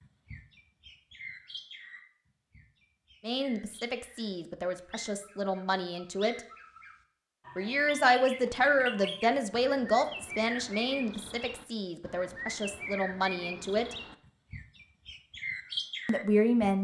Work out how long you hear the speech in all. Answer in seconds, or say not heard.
10 s.